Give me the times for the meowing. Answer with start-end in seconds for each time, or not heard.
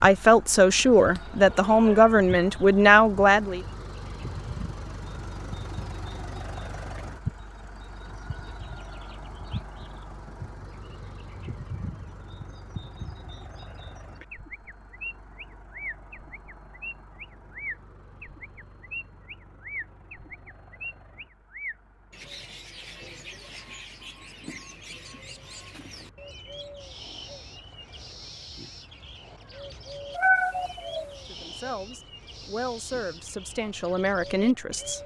0.9-2.1, 30.1-31.1.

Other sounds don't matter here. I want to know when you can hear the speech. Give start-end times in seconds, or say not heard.
0.0-3.6, 31.2-35.0.